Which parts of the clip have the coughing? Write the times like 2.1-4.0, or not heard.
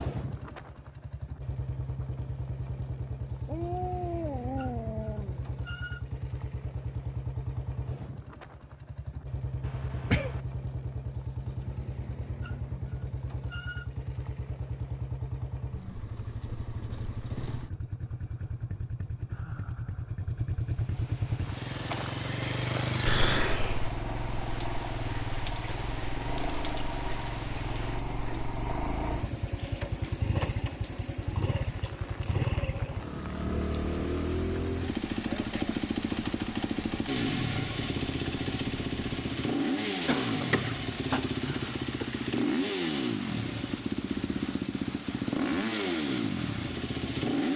9.6-10.4, 23.1-23.9, 40.0-42.0.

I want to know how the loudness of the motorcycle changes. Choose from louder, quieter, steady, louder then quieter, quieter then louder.
louder.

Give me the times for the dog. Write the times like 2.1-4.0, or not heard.
3.5-5.4.